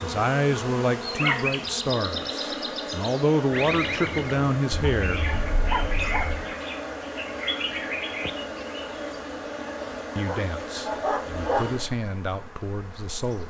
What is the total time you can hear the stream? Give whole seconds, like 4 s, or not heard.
not heard.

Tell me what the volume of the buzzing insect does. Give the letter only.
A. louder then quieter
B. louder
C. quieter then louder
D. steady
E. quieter
D.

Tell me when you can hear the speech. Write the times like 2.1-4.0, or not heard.
0.0-5.2, 10.2-13.4.